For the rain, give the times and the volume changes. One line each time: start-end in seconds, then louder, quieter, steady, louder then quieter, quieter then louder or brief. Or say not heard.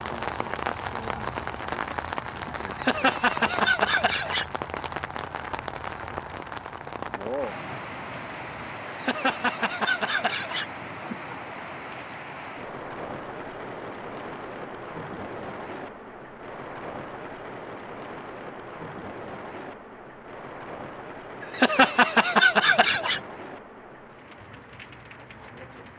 0.0-25.9 quieter.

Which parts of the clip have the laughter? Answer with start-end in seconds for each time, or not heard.
2.6-4.5, 8.8-11.3, 21.4-23.2.